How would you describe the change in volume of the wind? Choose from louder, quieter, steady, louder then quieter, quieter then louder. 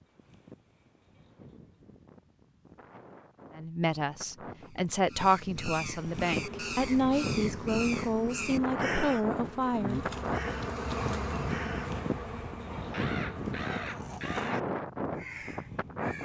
louder.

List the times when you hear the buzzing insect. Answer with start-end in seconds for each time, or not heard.
6.2-14.2.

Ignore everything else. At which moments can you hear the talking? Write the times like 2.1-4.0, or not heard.
3.5-10.1.